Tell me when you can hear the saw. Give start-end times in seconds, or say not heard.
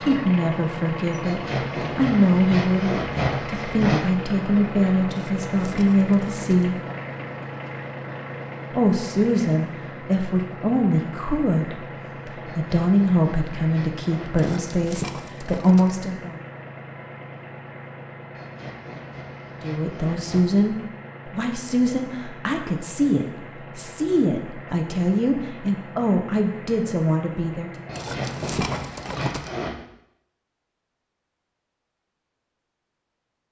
1.2-4.0, 12.4-14.7, 18.4-20.4, 27.9-29.8.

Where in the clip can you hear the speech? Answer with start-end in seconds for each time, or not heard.
0.0-6.8, 8.7-16.4, 19.6-27.7.